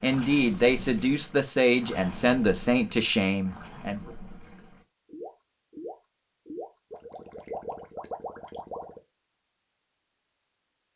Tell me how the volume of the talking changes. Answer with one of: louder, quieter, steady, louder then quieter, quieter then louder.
steady.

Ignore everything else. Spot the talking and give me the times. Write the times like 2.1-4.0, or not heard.
0.0-4.0.